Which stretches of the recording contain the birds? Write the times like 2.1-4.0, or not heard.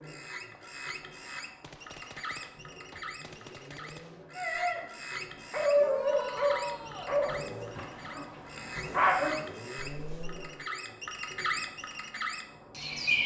0.0-13.2.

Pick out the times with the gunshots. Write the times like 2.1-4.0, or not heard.
1.6-4.3.